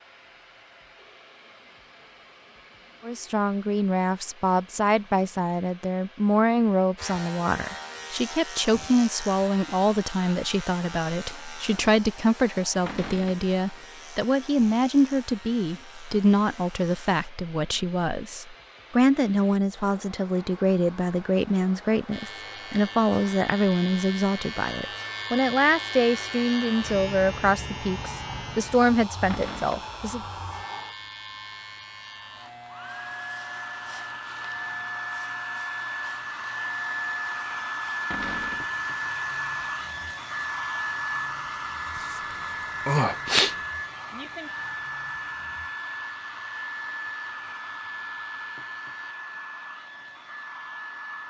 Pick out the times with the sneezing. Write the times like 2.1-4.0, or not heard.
42.0-43.5.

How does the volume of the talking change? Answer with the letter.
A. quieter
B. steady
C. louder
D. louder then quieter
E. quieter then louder
B.